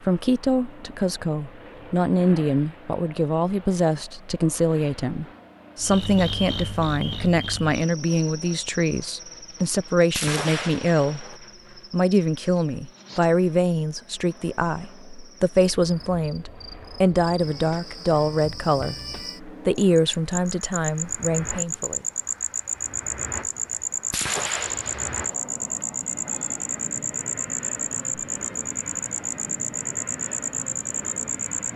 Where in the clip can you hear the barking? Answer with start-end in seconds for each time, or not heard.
not heard.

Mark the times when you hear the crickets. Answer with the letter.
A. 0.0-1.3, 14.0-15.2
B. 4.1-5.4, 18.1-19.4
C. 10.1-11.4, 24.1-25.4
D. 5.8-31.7
D.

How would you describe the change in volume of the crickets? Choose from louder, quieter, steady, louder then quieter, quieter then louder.
quieter then louder.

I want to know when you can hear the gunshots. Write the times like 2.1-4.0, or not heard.
10.1-11.4, 24.1-25.4.